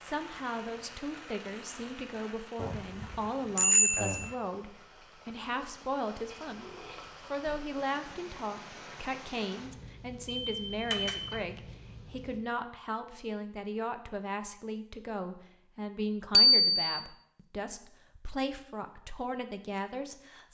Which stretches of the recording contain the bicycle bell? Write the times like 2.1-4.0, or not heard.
2.6-4.3, 10.2-11.4, 16.3-17.0.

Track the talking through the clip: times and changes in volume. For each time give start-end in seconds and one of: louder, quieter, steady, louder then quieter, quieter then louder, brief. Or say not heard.
0.0-20.4 steady.